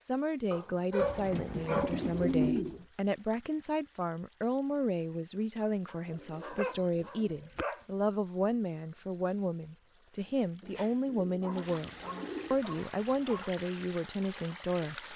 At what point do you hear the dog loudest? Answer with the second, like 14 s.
1 s.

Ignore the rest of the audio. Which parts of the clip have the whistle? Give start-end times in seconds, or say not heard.
not heard.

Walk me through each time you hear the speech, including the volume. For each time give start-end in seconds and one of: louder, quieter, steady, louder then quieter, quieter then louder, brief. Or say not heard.
0.0-15.1 steady.